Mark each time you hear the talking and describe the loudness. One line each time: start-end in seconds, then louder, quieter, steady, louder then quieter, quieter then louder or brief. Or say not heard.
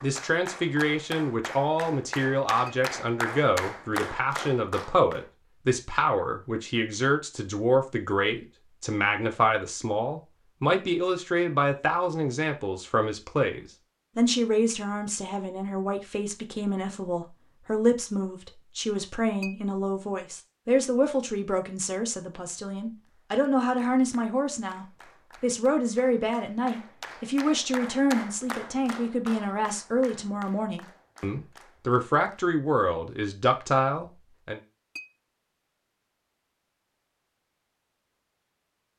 0.0-34.6 steady.